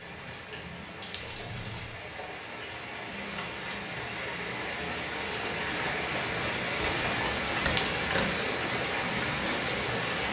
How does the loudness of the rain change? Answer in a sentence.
The volume of the rain goes up.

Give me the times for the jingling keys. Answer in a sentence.
You can hear the jingling keys from 1.1 to 1.9 s and from 6.8 to 8.4 s.